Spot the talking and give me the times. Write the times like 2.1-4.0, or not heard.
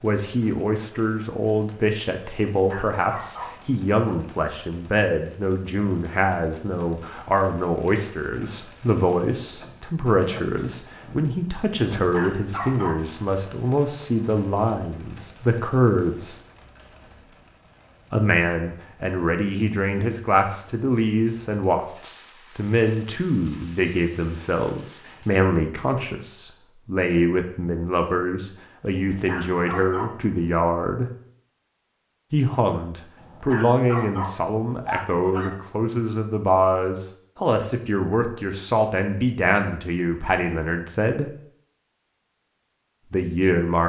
0.0-16.4, 18.1-31.1, 32.3-41.3, 43.1-43.8.